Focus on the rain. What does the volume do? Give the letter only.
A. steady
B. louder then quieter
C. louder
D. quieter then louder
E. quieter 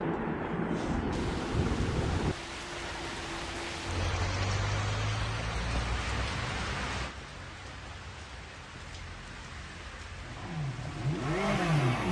E.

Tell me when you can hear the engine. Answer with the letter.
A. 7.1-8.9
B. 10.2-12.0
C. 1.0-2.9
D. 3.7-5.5
B.